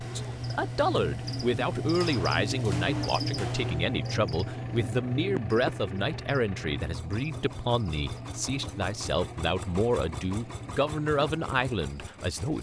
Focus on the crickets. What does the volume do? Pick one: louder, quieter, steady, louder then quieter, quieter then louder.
quieter.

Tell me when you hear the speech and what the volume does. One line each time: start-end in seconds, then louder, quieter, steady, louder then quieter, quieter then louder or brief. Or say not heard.
0.0-12.5 steady.